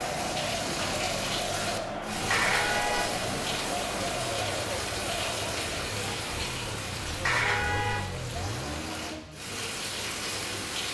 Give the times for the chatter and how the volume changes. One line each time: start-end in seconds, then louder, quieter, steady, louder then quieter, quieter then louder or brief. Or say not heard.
0.0-9.2 quieter.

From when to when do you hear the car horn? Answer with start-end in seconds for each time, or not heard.
2.1-3.1, 7.0-8.1.